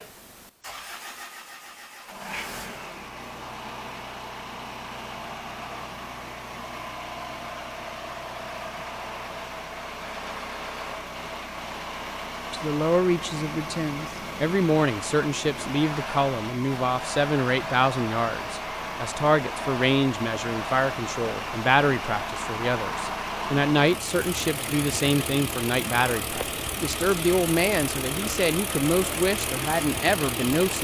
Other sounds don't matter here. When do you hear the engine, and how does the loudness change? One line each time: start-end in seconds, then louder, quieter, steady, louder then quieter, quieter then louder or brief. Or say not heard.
0.0-30.7 louder.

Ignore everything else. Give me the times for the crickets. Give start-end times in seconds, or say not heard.
not heard.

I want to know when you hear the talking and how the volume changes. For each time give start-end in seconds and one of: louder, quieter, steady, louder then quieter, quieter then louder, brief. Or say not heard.
12.5-30.7 steady.